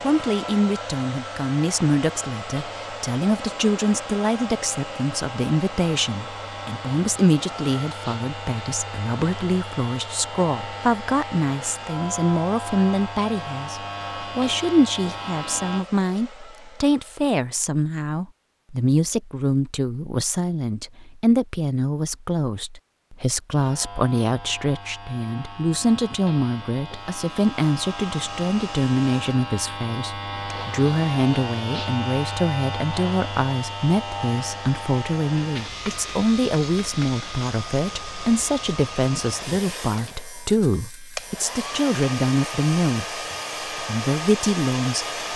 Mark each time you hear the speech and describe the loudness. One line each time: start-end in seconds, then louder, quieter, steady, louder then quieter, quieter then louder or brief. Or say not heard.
0.0-45.1 steady.